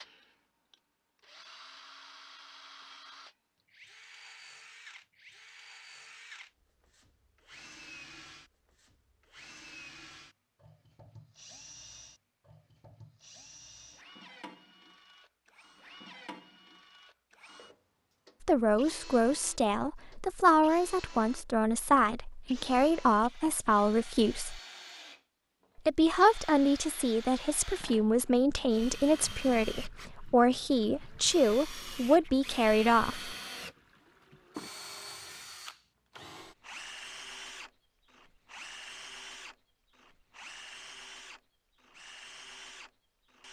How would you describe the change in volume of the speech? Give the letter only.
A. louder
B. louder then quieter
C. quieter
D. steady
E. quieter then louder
D.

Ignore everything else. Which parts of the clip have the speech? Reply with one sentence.
The speech can be heard from 18.4 to 24.6 s and from 25.9 to 33.4 s.